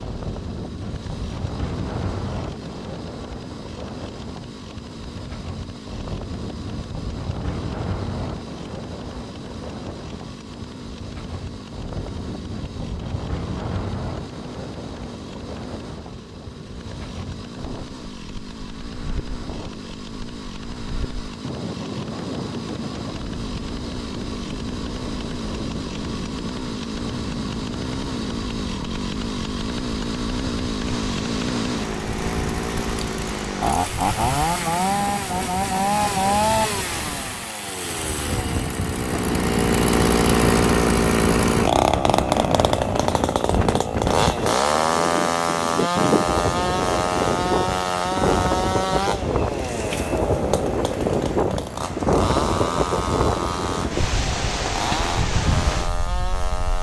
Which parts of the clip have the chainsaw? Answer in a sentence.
The chainsaw can be heard from 0.0 to 56.7 s.